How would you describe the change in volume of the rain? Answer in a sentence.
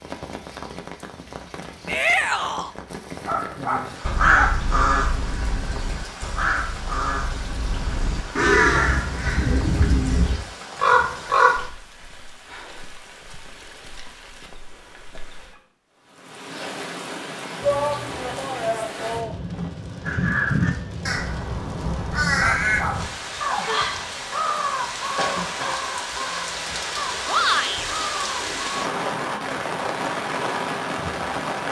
The loudness of the rain goes up.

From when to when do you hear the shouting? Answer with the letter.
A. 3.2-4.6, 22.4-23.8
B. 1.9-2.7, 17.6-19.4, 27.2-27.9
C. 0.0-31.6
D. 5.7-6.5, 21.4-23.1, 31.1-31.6
B.